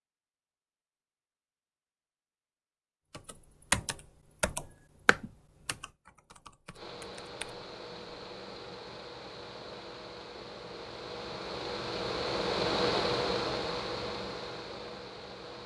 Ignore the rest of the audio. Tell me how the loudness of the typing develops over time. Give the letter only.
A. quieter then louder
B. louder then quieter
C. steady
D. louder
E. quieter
E.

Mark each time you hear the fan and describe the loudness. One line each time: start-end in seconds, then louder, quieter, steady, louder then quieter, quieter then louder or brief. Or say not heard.
6.7-15.6 louder then quieter.